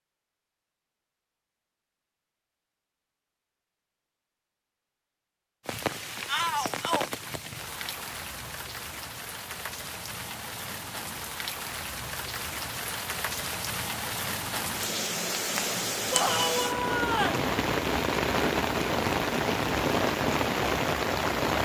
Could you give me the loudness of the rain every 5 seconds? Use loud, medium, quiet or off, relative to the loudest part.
off, medium, medium, loud, loud.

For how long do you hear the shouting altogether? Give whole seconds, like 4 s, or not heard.
2 s.